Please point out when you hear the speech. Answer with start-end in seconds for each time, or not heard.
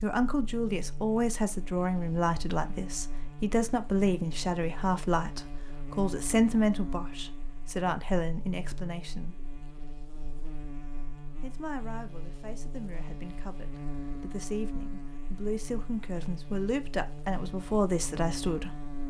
0.0-9.3, 11.4-18.9.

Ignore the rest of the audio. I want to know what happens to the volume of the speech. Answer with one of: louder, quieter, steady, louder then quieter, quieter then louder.
quieter then louder.